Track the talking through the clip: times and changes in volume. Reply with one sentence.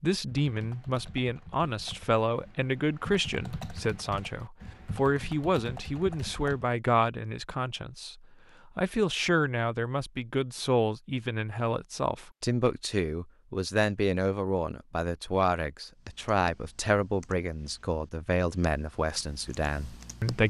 The talking can be heard from 0.0 to 20.4 s, at a steady volume.